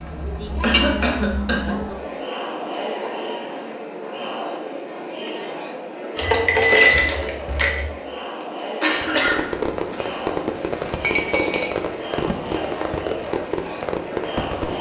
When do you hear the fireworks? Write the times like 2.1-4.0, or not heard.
8.9-14.7.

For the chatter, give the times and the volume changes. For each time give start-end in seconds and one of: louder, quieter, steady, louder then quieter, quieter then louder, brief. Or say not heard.
0.0-14.7 steady.